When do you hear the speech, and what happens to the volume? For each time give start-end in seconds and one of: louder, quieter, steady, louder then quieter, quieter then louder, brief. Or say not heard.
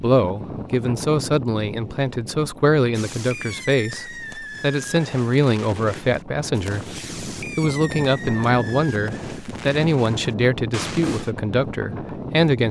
0.0-12.6 steady.